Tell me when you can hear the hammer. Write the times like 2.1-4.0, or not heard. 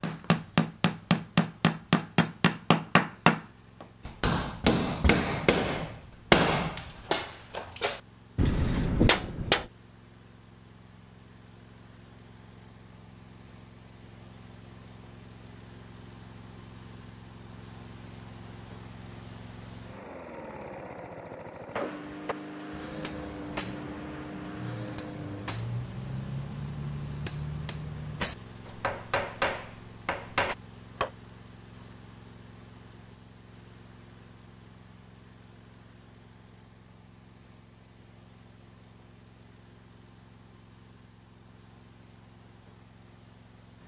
0.0-9.7, 21.8-31.1.